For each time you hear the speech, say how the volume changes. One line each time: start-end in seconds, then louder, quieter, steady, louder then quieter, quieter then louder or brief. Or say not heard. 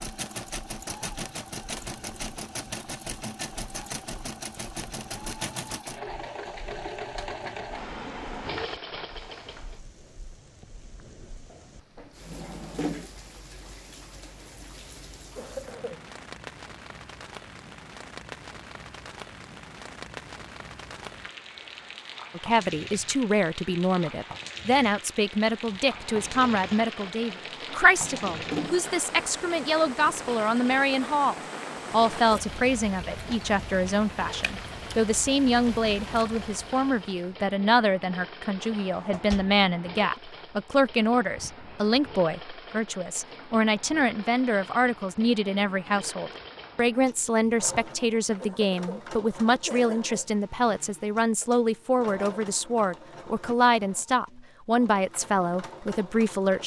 22.4-56.6 steady.